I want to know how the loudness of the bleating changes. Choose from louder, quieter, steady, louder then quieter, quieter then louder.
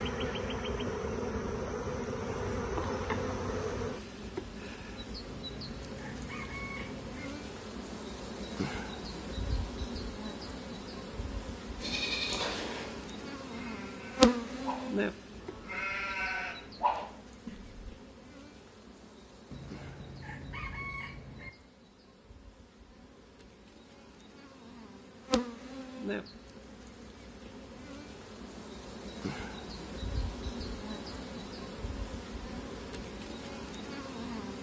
quieter then louder.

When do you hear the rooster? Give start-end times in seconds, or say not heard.
5.2-7.3, 19.5-21.5.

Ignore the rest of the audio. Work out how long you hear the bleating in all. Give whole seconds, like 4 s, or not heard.
6 s.